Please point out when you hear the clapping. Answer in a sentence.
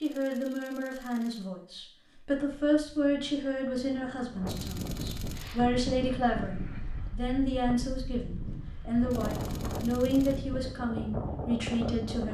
You can't hear the clapping here.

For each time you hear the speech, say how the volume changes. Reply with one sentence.
You can hear the speech from 0.0 to 12.2 s, at a steady volume.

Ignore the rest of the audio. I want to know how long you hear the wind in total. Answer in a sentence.
You can hear the wind for 10 seconds altogether.